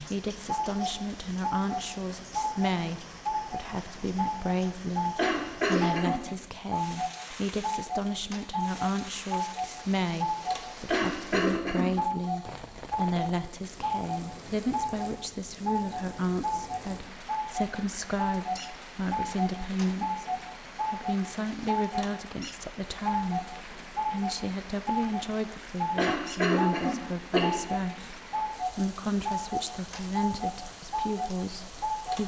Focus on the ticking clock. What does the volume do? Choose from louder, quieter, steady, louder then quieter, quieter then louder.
steady.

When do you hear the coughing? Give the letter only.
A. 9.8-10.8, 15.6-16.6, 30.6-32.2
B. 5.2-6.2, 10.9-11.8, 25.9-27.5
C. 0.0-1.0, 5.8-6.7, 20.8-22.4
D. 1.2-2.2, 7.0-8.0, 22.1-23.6
B.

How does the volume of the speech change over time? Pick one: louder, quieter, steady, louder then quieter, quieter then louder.
steady.